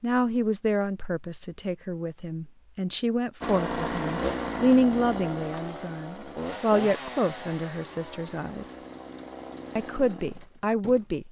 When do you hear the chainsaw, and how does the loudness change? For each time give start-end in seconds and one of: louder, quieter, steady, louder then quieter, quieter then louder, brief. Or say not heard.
3.4-11.2 quieter.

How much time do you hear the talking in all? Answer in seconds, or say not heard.
10 s.